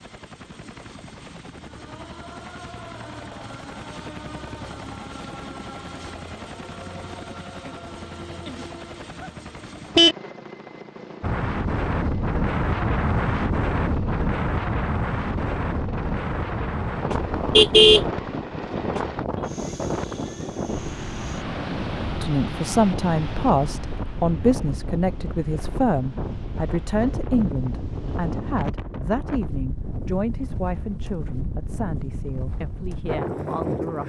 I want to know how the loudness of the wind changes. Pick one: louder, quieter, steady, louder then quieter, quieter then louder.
quieter.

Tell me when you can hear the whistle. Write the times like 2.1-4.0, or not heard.
not heard.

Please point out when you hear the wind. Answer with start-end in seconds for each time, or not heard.
11.2-34.0.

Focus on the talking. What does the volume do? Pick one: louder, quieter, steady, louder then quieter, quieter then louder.
quieter.